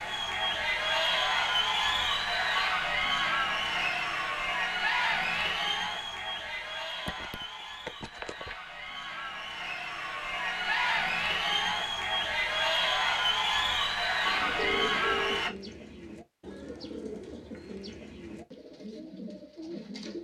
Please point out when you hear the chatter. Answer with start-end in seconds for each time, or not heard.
0.0-15.5.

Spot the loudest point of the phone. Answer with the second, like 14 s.
15 s.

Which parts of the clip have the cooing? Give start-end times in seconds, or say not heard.
14.2-20.1.